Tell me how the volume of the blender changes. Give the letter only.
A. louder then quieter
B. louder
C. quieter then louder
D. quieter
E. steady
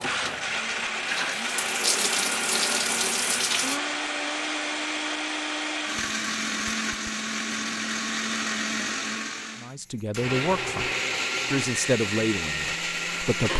E.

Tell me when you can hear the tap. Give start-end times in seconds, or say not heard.
0.0-3.8.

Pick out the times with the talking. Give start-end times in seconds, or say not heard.
9.6-10.9, 11.5-13.5.